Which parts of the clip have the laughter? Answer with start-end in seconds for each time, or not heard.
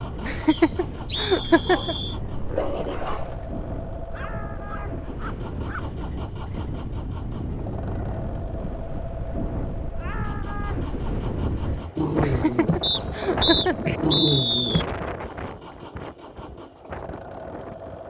0.2-1.9, 12.2-13.9.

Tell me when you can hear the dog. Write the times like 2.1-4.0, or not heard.
1.6-5.8, 11.9-15.0.